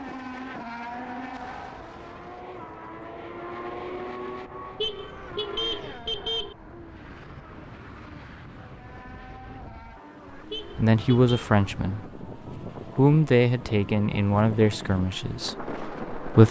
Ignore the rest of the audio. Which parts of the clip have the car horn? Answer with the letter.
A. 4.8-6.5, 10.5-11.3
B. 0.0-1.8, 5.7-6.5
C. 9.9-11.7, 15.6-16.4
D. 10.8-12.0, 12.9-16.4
A.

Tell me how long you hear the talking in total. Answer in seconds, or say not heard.
5 s.